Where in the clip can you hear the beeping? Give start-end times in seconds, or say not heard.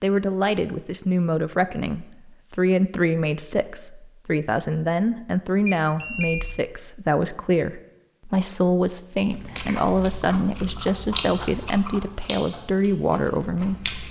5.7-6.7.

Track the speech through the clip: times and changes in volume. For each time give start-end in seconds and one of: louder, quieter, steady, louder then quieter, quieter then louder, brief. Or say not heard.
0.0-13.8 steady.